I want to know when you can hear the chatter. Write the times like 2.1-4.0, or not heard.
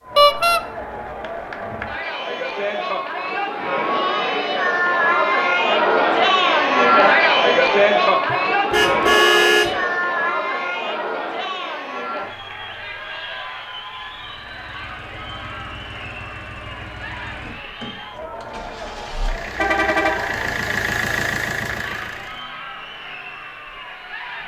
0.0-24.4.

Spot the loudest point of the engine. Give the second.
21 s.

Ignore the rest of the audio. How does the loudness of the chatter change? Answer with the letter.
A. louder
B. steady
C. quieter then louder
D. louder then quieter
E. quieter
D.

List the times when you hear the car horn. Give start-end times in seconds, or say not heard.
0.1-0.6, 8.3-9.8, 19.6-20.6.